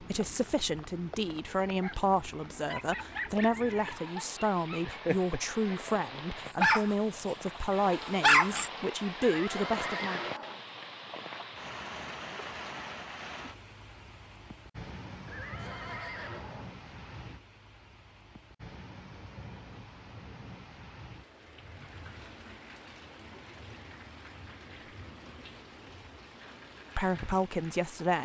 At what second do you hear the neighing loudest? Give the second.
10 s.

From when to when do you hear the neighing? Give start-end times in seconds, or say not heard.
9.2-10.7, 15.2-16.8.